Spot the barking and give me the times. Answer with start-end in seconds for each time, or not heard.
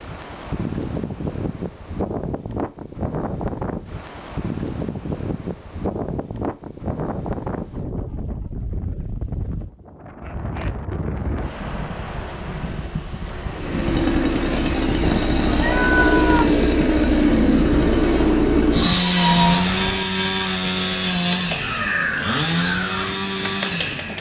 not heard.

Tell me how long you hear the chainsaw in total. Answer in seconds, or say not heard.
11 s.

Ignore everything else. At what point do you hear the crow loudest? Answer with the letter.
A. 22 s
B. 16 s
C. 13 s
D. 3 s
A.